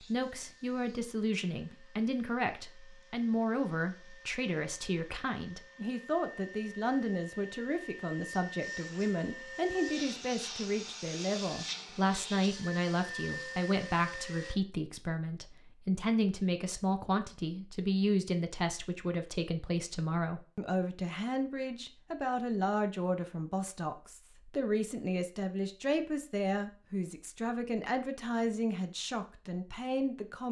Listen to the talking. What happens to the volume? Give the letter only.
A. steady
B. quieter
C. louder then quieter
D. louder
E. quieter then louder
A.